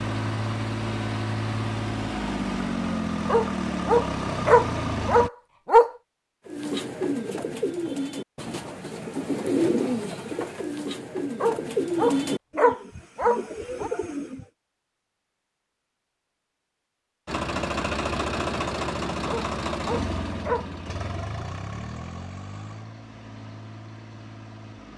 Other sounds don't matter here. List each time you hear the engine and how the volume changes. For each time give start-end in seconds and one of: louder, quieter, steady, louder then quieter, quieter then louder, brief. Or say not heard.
0.0-5.3 steady
17.2-24.9 quieter.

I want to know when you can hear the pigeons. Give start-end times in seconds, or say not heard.
6.5-14.4.